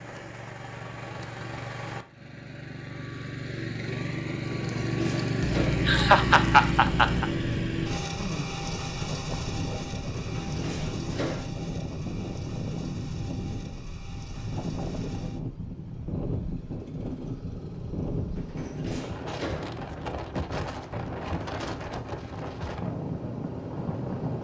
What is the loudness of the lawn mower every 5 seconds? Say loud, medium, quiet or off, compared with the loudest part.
medium, loud, quiet, quiet, quiet.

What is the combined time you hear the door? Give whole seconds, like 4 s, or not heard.
4 s.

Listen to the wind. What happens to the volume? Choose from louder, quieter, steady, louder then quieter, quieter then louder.
steady.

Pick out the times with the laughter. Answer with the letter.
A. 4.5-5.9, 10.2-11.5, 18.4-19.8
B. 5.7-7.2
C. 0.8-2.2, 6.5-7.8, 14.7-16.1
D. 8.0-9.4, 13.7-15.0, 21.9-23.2
B.